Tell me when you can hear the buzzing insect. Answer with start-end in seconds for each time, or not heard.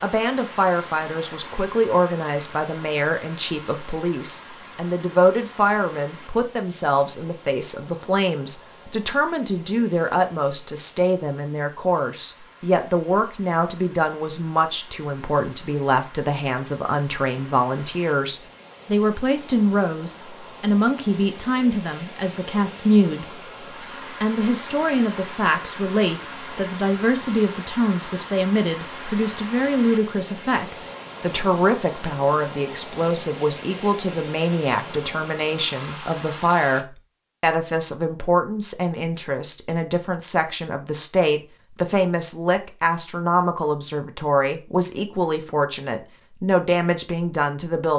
not heard.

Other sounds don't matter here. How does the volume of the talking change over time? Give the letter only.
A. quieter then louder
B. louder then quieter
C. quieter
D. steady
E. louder
D.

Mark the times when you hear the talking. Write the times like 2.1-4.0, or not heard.
0.0-23.2, 24.2-47.9.